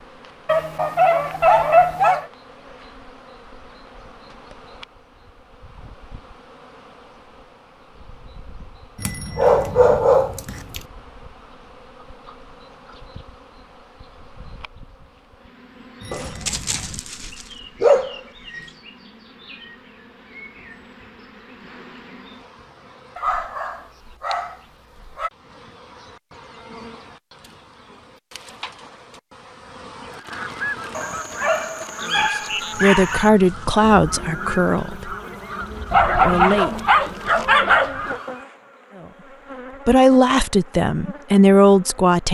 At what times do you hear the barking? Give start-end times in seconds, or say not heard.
0.5-2.2, 9.1-10.8, 16.1-18.7, 23.1-25.3, 30.9-33.3, 35.9-38.1.